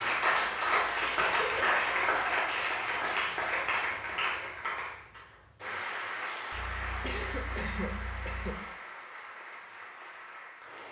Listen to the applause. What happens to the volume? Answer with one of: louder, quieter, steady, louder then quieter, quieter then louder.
quieter.